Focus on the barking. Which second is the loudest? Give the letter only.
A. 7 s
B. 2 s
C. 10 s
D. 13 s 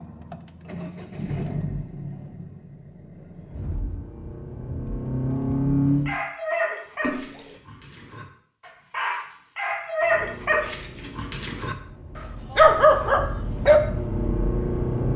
D.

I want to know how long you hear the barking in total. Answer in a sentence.
The barking can be heard for 8 seconds in total.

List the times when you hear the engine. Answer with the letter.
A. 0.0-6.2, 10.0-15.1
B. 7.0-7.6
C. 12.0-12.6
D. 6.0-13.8
A.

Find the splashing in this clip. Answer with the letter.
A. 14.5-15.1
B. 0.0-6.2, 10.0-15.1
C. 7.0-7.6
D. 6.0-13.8
C.